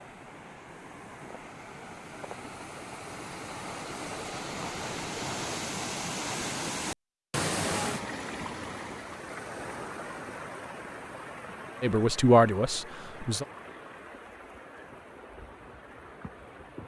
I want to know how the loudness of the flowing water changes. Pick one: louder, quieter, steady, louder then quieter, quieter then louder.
louder then quieter.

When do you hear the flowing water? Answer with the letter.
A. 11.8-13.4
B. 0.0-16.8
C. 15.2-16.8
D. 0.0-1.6
B.